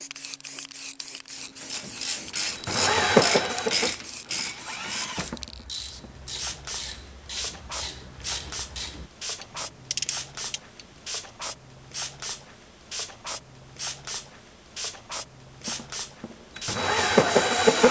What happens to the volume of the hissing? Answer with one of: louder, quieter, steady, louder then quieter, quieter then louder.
steady.